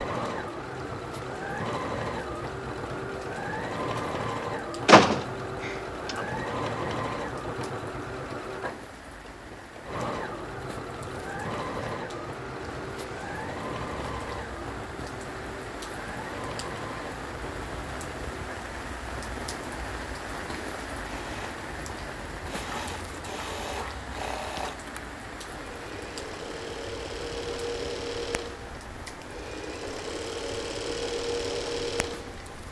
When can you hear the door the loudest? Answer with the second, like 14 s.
5 s.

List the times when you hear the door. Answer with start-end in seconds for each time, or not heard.
4.8-6.2.